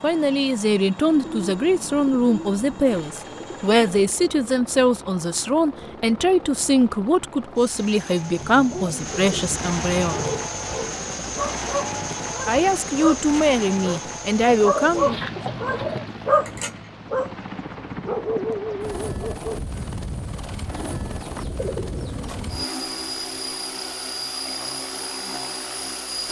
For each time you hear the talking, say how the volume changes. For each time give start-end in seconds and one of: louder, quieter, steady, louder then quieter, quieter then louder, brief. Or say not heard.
0.0-10.2 steady
12.4-15.1 brief.